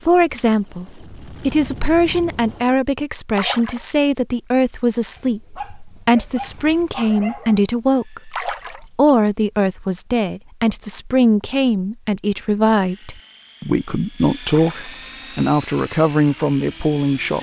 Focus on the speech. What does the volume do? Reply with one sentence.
The loudness of the speech stays about the same.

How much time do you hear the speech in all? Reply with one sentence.
You can hear the speech for 17 seconds altogether.